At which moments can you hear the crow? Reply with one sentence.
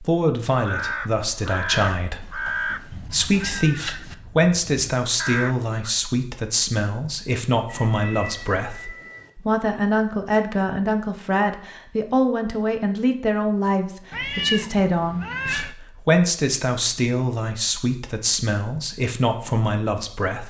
You can hear the crow from 0.5 to 5.8 s.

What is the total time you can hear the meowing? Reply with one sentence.
The meowing can be heard for 5 seconds in total.